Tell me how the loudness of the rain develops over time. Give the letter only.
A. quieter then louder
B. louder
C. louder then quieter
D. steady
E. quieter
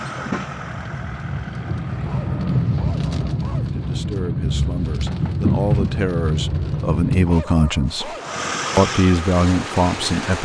C.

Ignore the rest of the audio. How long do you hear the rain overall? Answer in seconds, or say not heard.
10 s.